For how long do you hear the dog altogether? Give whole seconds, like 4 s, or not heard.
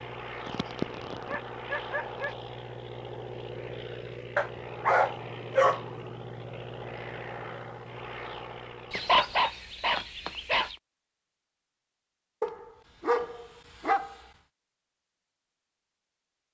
7 s.